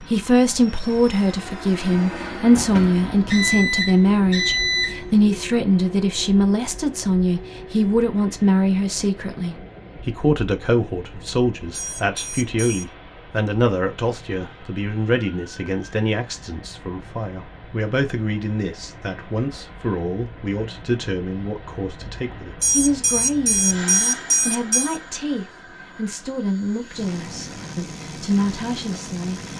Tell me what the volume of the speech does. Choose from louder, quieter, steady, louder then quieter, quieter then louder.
quieter.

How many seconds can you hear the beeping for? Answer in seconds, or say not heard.
6 s.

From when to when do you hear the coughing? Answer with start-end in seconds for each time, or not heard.
not heard.